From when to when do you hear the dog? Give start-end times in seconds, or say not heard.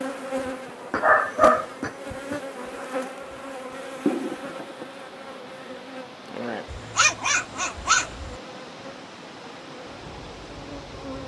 0.9-2.4, 6.7-8.3.